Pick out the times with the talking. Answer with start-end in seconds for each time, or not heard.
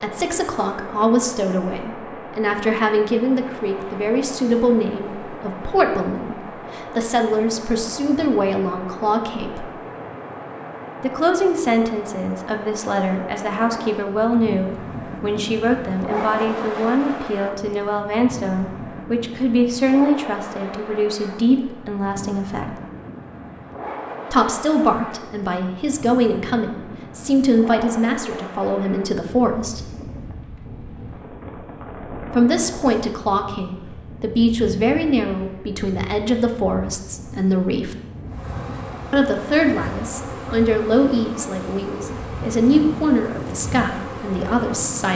0.0-9.7, 11.0-22.8, 24.3-29.9, 32.3-38.0, 39.1-45.1.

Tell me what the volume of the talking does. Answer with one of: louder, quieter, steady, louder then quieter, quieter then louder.
steady.